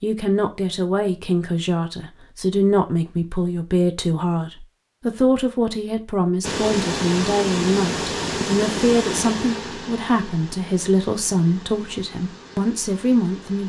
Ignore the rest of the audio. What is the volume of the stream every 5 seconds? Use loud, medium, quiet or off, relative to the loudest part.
off, loud, quiet.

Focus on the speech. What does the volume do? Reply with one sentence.
The volume of the speech stays about the same.